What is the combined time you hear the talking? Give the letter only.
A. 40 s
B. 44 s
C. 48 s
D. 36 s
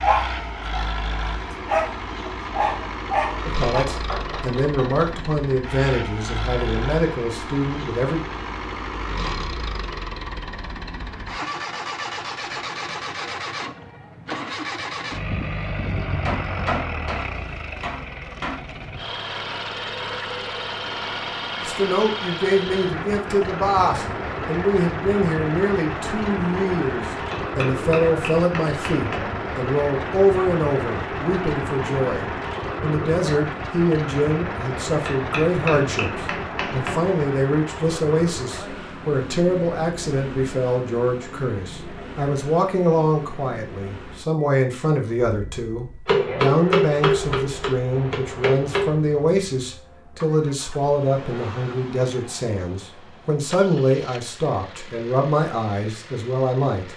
A.